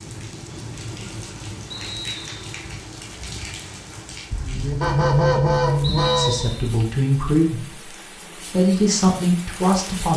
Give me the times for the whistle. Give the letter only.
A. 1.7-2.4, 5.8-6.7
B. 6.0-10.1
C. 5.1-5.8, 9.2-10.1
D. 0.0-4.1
A.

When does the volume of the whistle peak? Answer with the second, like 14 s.
6 s.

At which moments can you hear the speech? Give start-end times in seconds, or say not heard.
6.0-10.1.